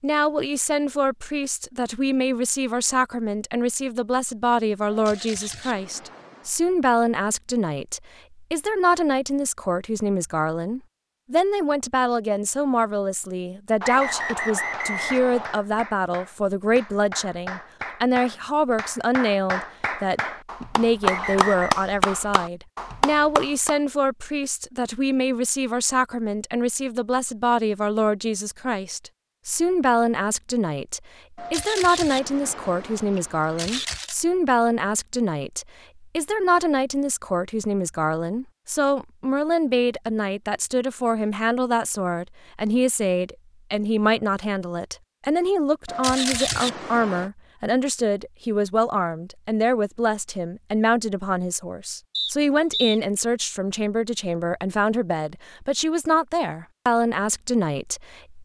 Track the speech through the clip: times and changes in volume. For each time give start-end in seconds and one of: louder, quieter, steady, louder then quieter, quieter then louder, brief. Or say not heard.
0.0-58.4 steady.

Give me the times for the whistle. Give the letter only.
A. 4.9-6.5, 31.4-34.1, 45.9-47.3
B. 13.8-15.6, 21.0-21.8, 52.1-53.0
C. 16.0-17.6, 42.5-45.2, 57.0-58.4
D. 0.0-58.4
B.